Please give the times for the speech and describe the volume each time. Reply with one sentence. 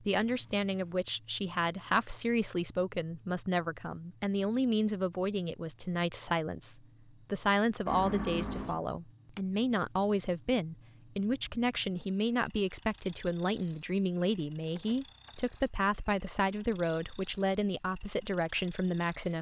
The speech can be heard from 0.0 to 19.3 s, at a steady volume.